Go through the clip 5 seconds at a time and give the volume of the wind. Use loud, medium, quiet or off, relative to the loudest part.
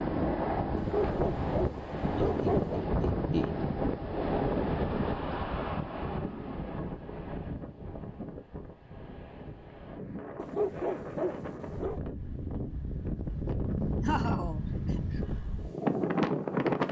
loud, medium, medium, loud.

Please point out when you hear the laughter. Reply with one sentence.
You can hear the laughter from 2.1 to 3.7 s and from 14.0 to 15.0 s.